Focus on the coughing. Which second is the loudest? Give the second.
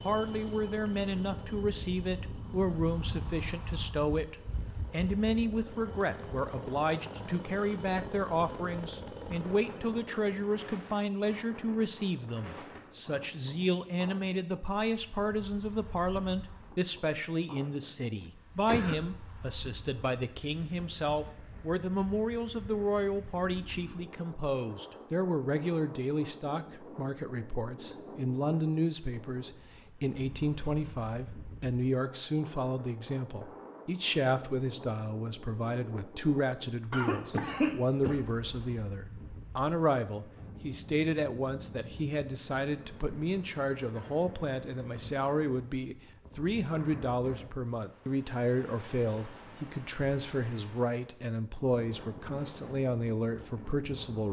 38 s.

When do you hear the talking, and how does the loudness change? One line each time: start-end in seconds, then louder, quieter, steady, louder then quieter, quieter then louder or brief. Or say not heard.
0.0-54.2 steady.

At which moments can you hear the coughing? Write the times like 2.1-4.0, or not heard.
18.2-18.9, 36.9-38.2.